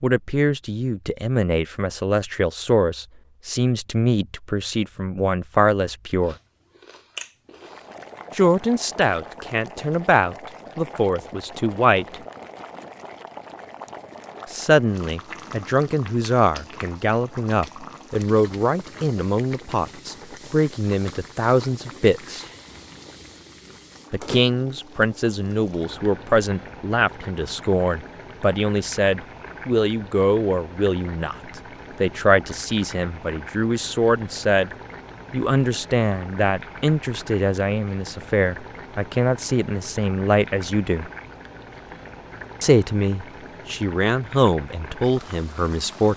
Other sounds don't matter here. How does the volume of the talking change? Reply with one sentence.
The loudness of the talking stays about the same.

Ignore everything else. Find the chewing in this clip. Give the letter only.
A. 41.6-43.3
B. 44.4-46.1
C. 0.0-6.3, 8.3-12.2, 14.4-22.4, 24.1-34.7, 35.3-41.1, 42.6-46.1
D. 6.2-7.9
D.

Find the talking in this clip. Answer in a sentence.
You can hear the talking from 0.0 to 6.3 s, from 8.3 to 12.2 s, from 14.4 to 22.4 s, from 24.1 to 34.7 s, from 35.3 to 41.1 s and from 42.6 to 46.1 s.